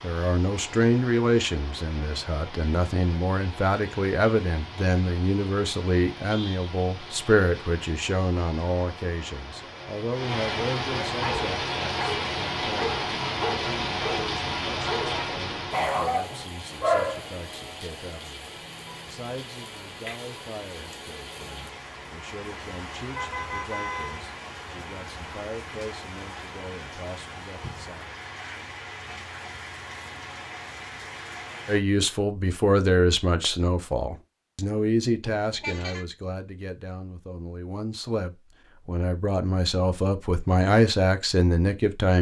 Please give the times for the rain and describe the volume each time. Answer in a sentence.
The rain can be heard from 0.0 to 31.9 s, getting louder then quieter.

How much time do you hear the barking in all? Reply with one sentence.
The barking can be heard for 6 seconds in total.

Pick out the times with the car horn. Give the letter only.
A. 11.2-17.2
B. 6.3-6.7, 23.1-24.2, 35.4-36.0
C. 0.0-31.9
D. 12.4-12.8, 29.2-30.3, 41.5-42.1
B.